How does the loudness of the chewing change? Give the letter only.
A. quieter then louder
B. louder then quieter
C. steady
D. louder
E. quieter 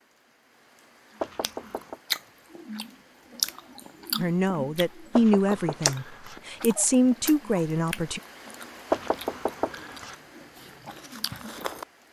E.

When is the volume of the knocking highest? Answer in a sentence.
The loudest moment of the knocking is at 9 seconds.